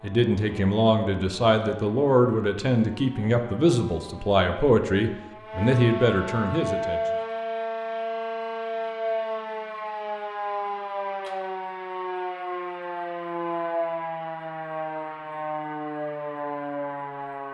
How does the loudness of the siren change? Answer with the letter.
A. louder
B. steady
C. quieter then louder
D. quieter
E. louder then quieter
A.